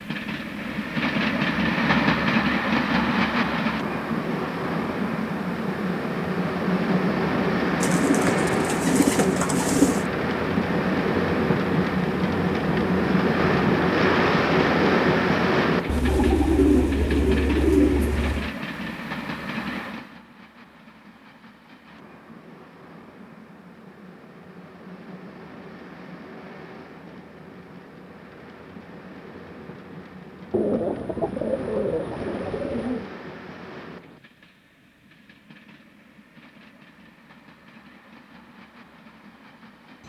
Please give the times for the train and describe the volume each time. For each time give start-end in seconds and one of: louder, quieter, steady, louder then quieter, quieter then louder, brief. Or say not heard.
0.0-40.0 quieter.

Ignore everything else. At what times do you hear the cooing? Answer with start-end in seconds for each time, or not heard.
7.8-10.1, 15.8-18.5, 30.5-33.1.